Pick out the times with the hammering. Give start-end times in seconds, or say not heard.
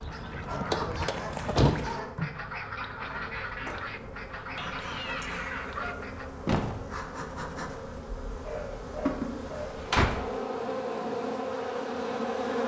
not heard.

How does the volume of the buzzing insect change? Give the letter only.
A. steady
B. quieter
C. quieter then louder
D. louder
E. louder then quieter
D.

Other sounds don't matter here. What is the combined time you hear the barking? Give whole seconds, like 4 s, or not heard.
5 s.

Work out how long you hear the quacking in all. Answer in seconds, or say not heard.
6 s.